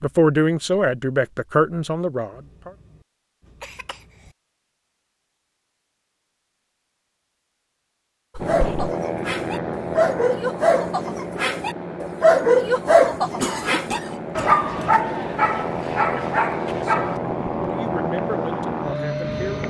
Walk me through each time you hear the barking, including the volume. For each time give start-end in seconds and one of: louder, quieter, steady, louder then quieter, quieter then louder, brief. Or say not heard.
8.3-17.2 louder then quieter.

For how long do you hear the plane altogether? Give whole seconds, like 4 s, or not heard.
11 s.